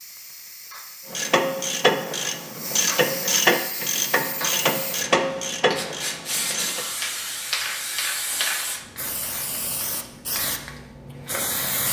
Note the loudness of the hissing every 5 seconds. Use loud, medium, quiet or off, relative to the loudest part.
medium, loud, loud.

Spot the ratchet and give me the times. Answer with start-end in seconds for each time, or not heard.
1.1-6.8.